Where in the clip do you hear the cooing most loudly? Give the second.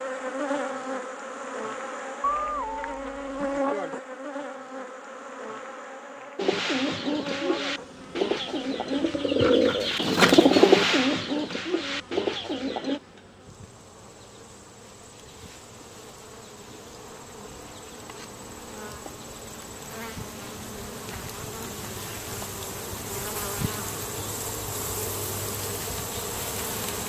11 s.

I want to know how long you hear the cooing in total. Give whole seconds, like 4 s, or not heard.
7 s.